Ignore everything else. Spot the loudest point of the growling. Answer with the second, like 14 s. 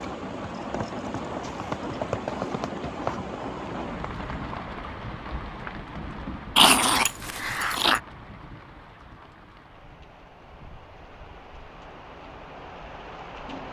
7 s.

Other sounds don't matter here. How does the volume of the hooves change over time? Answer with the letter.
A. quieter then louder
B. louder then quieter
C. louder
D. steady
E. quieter
B.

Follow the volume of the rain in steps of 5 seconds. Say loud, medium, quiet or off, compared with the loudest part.
loud, medium, medium.